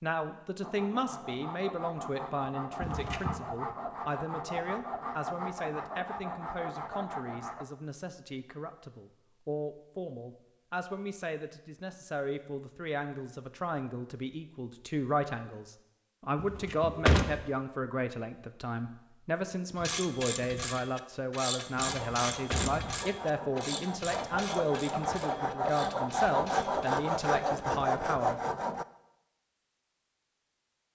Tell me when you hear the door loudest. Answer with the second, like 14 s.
17 s.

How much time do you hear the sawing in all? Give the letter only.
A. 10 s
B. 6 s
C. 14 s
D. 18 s
C.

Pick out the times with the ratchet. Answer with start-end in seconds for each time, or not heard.
19.8-27.6.